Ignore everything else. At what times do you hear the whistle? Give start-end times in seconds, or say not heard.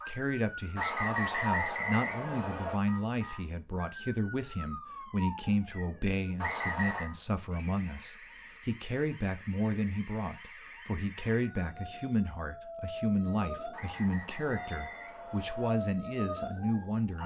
0.8-2.8, 6.4-7.0, 13.7-15.8.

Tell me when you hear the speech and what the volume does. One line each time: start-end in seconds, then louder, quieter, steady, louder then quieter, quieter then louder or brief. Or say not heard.
0.1-17.2 steady.